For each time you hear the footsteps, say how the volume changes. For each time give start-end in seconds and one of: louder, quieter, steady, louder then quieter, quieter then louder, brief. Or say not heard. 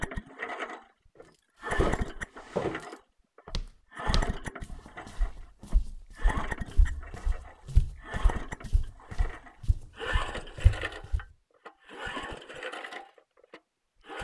1.8-11.2 quieter then louder.